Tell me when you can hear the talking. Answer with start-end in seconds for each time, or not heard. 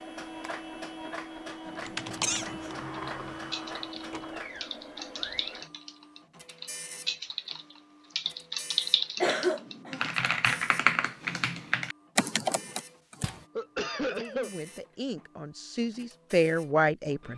13.9-17.3.